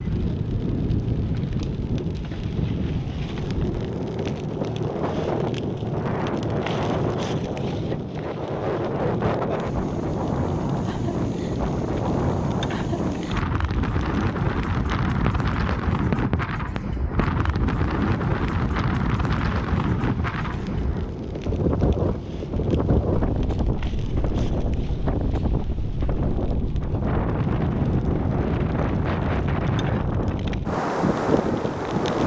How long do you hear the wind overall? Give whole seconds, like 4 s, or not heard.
32 s.